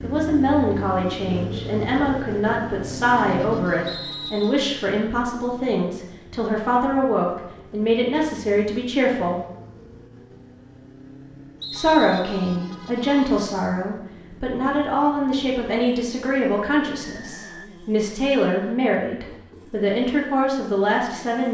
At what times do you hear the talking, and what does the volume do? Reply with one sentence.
You can hear the talking from 0.0 to 9.4 s, at a steady volume; and from 11.7 to 21.4 s, at a steady volume.